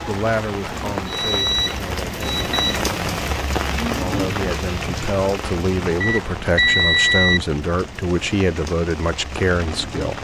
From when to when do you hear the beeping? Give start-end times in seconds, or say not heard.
1.1-2.9, 6.0-7.4.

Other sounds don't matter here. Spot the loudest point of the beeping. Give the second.
7 s.